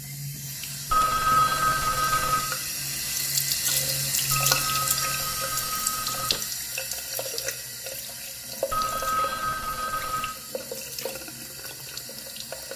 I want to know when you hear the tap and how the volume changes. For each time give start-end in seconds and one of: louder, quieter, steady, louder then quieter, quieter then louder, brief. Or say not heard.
0.0-12.7 louder then quieter.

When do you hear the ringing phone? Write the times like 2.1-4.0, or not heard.
0.9-2.5, 4.3-6.4, 8.7-10.3.